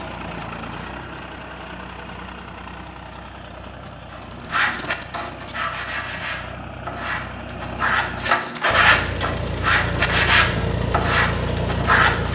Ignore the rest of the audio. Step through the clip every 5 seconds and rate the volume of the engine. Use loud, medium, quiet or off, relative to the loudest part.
medium, medium, loud.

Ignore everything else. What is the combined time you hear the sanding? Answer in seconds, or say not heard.
8 s.